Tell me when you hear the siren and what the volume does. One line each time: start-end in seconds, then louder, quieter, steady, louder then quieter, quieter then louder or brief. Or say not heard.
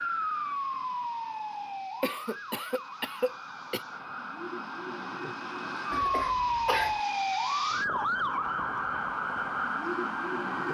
0.0-10.6 quieter then louder.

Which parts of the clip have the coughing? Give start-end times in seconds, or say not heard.
2.0-3.9, 5.9-7.0.